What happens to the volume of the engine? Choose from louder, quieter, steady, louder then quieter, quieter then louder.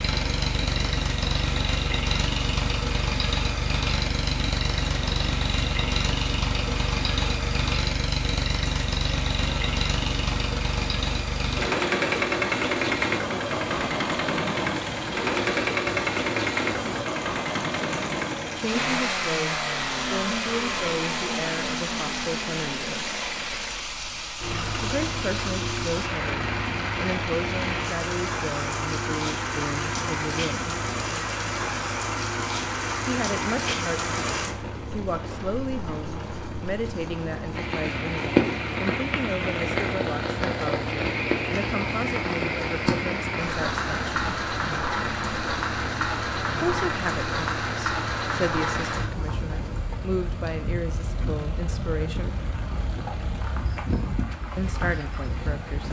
quieter.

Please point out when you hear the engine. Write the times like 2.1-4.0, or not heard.
0.0-55.8.